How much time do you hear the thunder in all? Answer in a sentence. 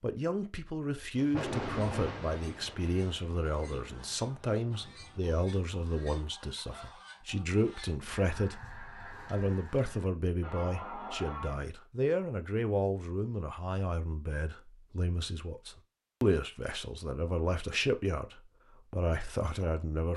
You can hear the thunder for 4 seconds altogether.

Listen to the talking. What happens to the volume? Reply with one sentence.
The loudness of the talking stays about the same.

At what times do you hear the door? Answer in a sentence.
You can't hear the door here.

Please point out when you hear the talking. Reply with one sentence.
You can hear the talking from 0.0 to 20.1 s.